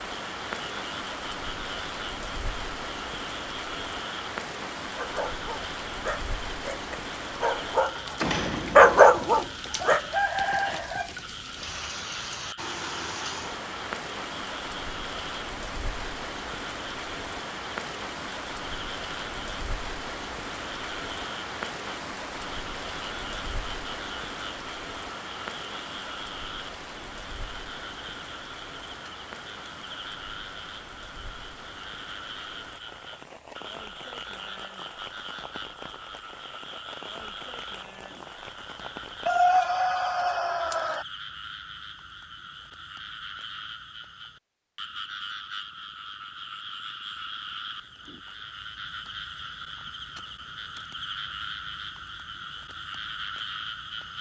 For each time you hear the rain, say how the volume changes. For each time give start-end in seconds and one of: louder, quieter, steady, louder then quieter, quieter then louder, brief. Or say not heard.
0.0-39.7 quieter.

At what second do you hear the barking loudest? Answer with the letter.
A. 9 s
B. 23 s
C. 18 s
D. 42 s
A.